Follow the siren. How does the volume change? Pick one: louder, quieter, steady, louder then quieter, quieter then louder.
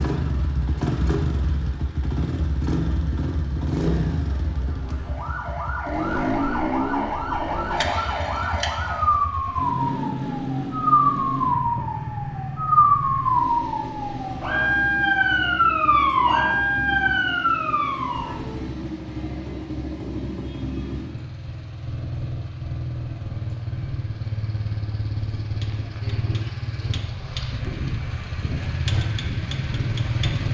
louder.